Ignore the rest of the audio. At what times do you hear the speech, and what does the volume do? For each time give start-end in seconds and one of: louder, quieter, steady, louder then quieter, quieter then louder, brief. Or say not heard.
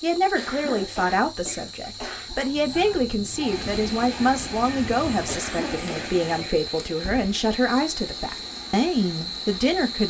0.0-10.0 steady.